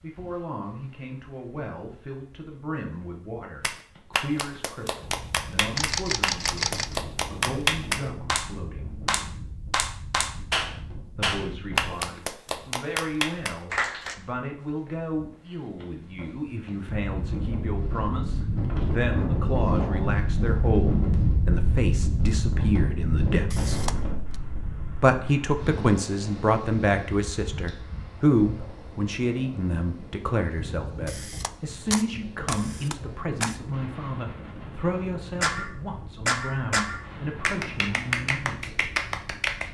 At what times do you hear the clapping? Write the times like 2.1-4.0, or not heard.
3.6-14.2, 35.4-39.6.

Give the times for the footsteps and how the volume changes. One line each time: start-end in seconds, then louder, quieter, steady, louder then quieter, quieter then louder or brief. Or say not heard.
not heard.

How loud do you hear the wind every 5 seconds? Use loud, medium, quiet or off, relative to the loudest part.
quiet, quiet, quiet, loud, loud, medium, quiet, quiet.